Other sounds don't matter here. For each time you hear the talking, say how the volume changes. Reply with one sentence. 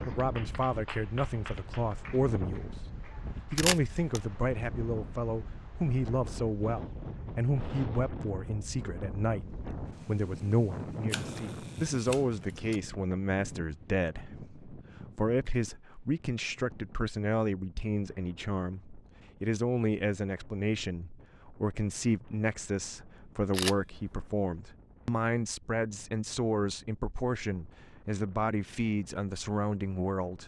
The talking can be heard from 0.0 to 30.4 s, at a steady volume.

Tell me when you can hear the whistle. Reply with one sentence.
You can't hear the whistle here.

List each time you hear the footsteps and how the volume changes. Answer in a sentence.
You can't hear the footsteps here.